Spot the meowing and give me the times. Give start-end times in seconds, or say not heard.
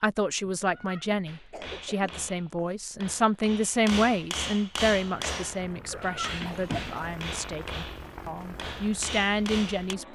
0.6-1.4, 5.7-7.0.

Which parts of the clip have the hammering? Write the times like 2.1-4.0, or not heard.
1.2-9.9.